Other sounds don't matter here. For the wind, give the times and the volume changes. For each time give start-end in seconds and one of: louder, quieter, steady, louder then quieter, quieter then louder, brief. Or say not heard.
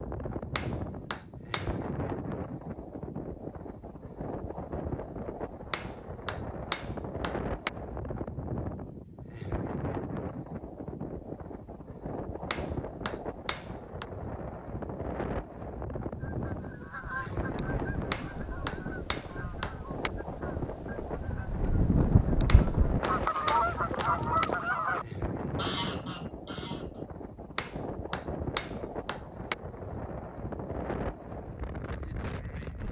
0.0-32.8 steady.